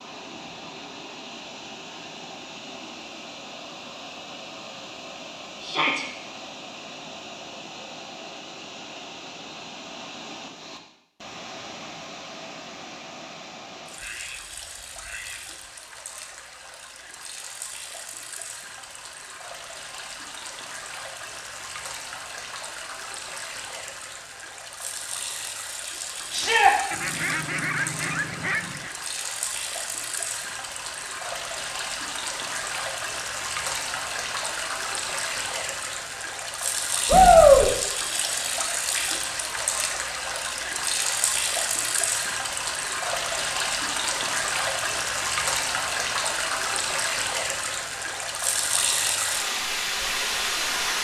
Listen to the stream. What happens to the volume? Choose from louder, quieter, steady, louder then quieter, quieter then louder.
louder.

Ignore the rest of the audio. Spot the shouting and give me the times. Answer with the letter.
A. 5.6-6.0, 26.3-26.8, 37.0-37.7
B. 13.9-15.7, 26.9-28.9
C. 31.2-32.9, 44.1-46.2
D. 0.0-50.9
A.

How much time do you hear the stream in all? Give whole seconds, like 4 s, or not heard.
51 s.